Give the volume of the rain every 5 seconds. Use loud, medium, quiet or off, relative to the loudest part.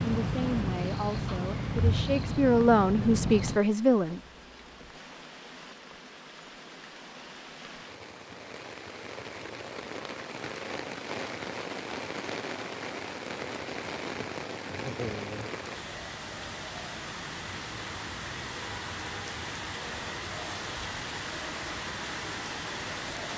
medium, medium, loud, loud, loud.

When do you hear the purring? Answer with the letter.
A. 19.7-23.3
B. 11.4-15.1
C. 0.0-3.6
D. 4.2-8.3
C.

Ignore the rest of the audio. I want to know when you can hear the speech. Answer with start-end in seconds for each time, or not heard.
0.0-4.2.